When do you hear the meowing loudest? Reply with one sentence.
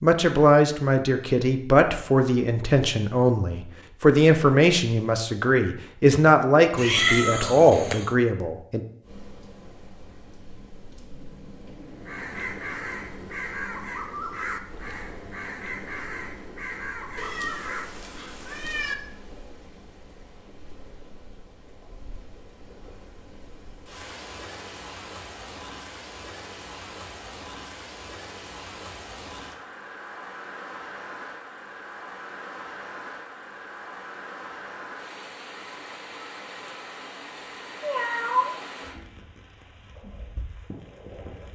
The loudest moment of the meowing is at 7 seconds.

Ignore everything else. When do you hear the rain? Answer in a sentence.
The rain can be heard from 9.0 to 41.5 s.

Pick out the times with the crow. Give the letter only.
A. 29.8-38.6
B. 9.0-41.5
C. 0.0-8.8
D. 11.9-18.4
D.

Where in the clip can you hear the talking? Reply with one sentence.
The talking can be heard from 0.0 to 8.8 s.